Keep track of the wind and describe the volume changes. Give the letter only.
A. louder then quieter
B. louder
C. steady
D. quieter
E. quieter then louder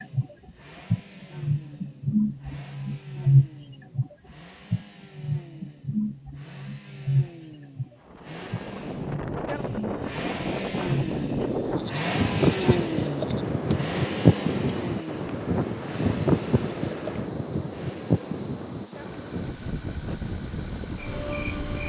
A.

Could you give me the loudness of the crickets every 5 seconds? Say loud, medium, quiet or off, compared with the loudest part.
loud, medium, quiet, quiet, medium.